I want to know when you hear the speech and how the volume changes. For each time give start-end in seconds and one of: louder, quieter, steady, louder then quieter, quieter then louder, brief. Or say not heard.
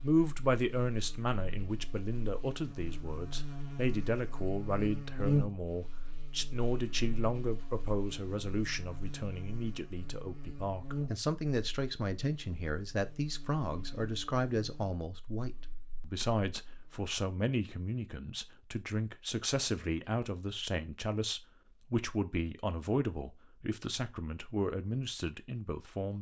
0.0-26.1 steady.